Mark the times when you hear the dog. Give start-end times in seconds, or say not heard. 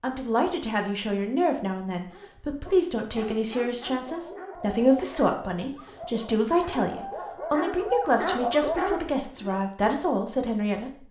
2.1-9.7.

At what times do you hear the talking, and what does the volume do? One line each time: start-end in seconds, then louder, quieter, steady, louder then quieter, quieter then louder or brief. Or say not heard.
0.0-11.0 steady.